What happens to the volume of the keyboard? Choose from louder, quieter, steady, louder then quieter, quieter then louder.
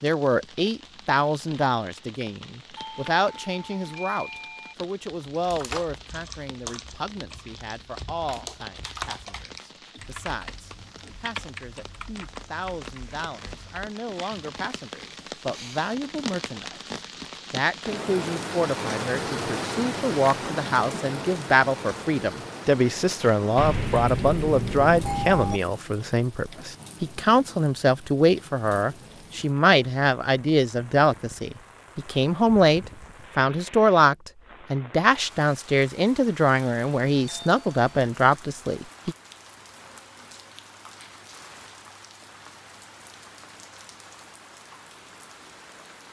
quieter.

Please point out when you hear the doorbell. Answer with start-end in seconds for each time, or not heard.
2.8-4.8, 23.6-25.6, 37.1-37.8.